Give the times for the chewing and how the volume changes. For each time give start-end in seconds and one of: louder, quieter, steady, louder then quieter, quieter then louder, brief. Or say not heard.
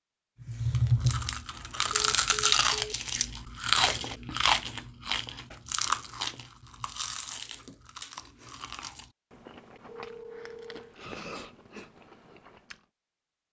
0.4-12.8 quieter.